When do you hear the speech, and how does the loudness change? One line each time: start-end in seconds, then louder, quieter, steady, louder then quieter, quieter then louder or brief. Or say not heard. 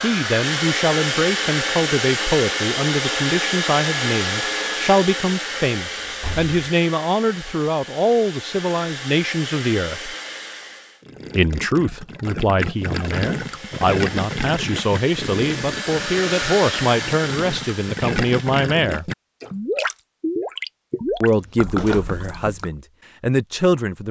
0.0-10.2 steady
11.3-19.1 steady
21.2-24.0 brief.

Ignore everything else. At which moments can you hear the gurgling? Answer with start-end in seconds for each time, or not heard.
11.0-22.7.